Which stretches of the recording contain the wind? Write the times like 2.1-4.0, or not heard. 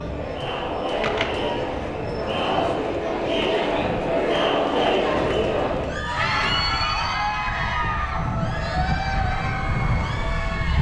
0.0-10.7.